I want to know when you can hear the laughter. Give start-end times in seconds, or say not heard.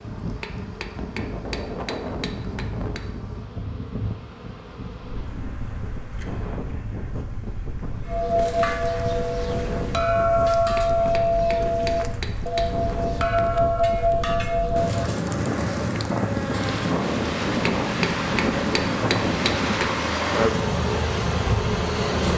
not heard.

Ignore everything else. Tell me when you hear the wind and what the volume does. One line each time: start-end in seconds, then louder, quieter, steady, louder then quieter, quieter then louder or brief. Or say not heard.
0.0-22.3 louder.